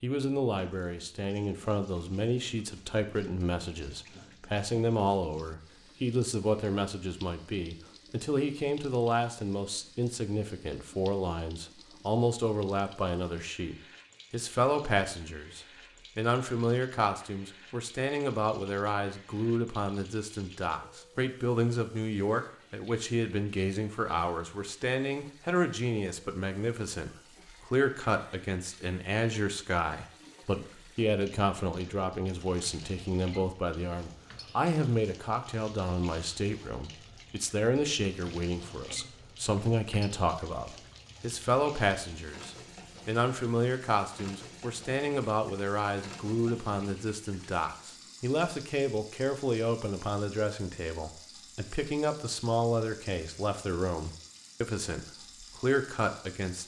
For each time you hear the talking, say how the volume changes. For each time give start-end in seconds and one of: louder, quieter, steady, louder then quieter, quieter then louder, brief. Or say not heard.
0.0-56.6 steady.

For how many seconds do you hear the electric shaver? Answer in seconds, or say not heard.
not heard.